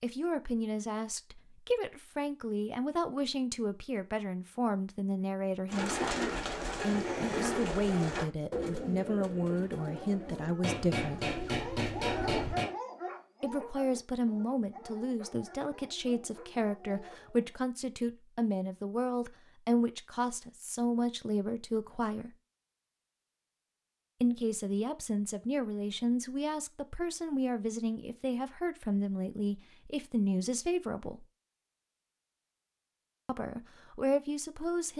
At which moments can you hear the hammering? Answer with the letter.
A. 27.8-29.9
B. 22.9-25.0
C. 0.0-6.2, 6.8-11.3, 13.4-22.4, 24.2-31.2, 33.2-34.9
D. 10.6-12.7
D.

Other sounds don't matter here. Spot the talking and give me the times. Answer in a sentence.
The talking can be heard from 0.0 to 6.2 s, from 6.8 to 11.3 s, from 13.4 to 22.4 s, from 24.2 to 31.2 s and from 33.2 to 34.9 s.